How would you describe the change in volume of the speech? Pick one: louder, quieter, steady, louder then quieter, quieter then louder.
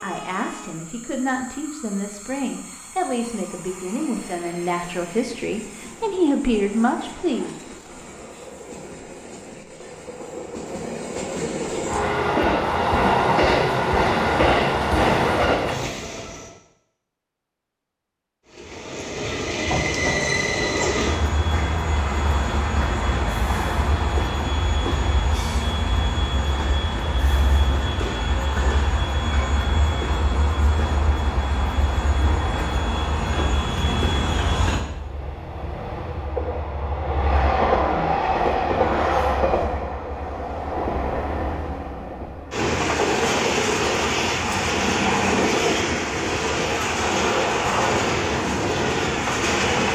louder.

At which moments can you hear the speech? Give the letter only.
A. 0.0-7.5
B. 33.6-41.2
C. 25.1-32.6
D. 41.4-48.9
A.